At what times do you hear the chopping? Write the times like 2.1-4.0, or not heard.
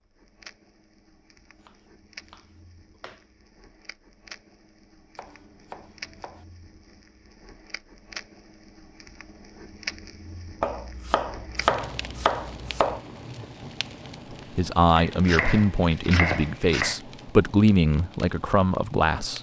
1.6-3.2, 5.2-6.5, 10.6-13.0, 14.9-16.9.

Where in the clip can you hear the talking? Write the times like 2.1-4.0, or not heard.
14.6-19.3.